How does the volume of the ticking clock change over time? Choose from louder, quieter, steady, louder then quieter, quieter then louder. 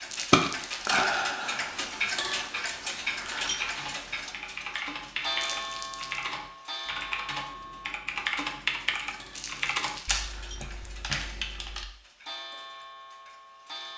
quieter.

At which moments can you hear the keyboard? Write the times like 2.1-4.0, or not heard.
3.0-11.8.